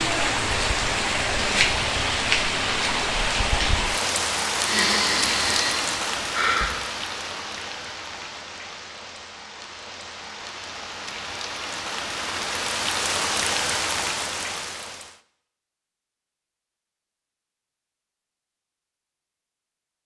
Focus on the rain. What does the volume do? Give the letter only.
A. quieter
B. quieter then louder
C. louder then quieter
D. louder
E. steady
B.